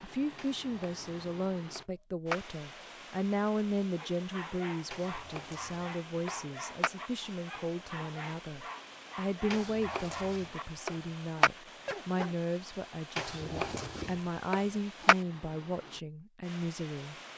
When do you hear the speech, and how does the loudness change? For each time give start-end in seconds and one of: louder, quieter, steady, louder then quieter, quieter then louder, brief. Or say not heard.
0.0-17.1 steady.